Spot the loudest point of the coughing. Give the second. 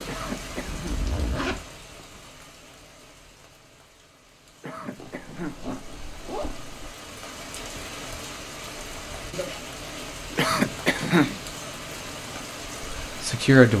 11 s.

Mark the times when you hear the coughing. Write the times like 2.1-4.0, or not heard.
0.1-0.9, 4.6-5.6, 10.3-11.4.